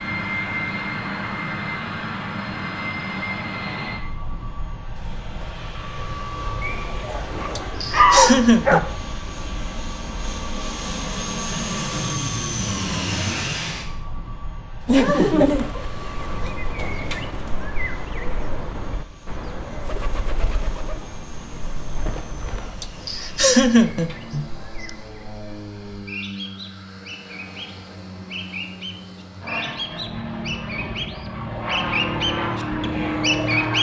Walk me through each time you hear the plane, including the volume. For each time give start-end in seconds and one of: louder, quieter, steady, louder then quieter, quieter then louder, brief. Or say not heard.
0.0-33.7 quieter then louder.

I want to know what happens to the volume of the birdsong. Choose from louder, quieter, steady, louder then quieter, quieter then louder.
quieter then louder.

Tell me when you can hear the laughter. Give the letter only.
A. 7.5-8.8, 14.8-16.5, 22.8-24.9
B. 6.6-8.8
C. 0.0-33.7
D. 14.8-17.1
A.